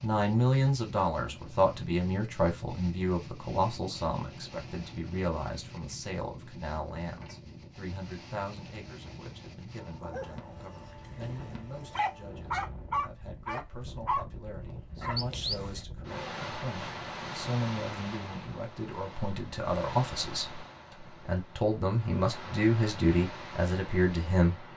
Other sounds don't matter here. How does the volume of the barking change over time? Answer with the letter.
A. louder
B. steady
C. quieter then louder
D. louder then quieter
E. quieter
D.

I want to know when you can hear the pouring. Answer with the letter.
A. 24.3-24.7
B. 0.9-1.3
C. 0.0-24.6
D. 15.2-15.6
D.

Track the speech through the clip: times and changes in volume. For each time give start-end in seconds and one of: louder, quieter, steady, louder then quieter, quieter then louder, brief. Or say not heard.
0.0-24.6 quieter then louder.